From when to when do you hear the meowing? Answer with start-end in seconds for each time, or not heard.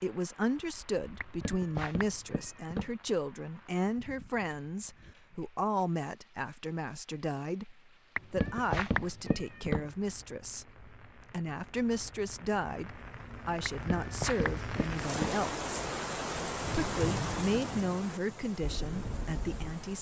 1.2-3.0, 8.2-9.9, 13.7-15.4.